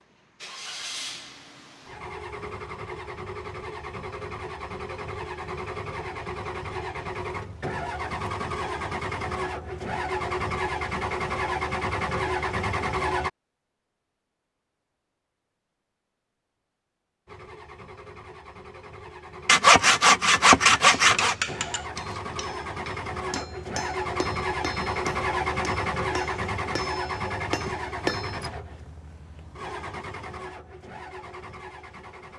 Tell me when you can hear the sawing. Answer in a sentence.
The sawing can be heard from 19.4 to 21.4 s.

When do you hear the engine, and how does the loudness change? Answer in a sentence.
You can hear the engine from 0.0 to 13.3 s, getting louder; and from 17.2 to 32.3 s, getting louder then quieter.